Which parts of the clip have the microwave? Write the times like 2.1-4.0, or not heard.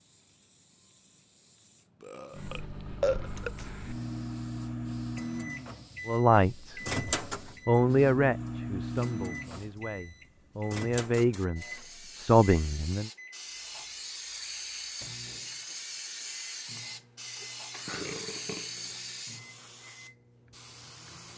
2.3-21.3.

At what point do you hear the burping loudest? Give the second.
3 s.